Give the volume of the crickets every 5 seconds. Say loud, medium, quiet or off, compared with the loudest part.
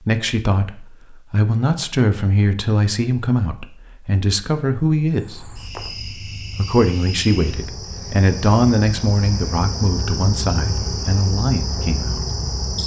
off, medium, loud.